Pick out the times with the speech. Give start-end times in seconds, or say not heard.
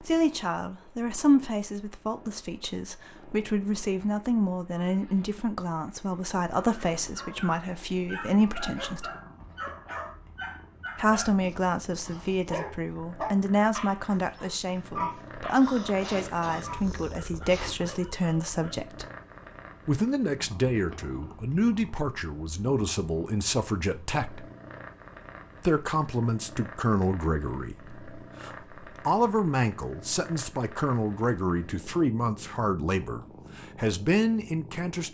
0.0-9.1, 10.9-19.1, 19.9-24.4, 25.6-35.0.